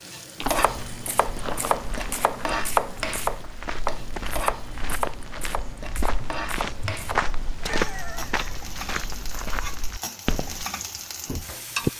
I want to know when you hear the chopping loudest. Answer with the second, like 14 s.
3 s.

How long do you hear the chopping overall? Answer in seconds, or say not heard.
8 s.